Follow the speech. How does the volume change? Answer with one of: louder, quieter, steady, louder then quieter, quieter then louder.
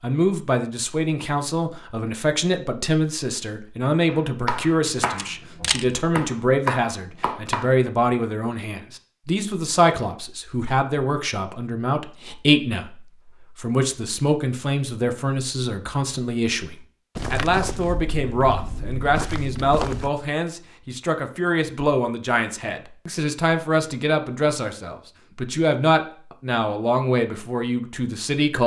steady.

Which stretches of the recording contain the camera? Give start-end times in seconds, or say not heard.
5.0-5.8.